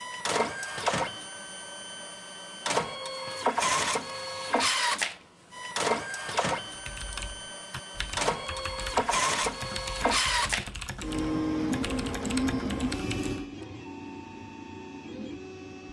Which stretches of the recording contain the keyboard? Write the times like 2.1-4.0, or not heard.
6.7-13.4.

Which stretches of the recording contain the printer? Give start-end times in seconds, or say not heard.
0.0-15.8.